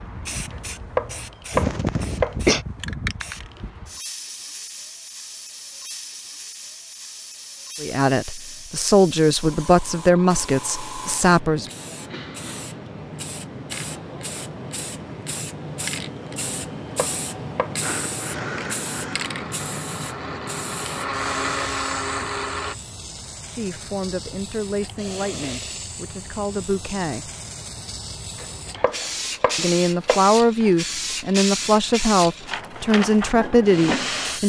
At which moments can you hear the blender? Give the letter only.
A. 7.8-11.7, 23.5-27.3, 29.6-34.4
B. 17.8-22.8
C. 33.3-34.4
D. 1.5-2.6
B.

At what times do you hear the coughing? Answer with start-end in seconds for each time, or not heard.
1.5-2.6.